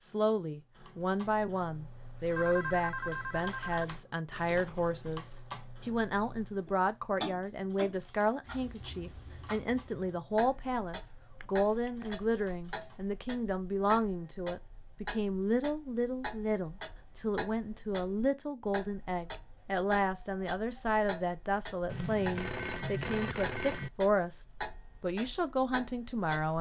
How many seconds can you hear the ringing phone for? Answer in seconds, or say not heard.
4 s.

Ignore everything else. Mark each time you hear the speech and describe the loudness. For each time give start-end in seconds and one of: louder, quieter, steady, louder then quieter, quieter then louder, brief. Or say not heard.
0.0-26.5 steady.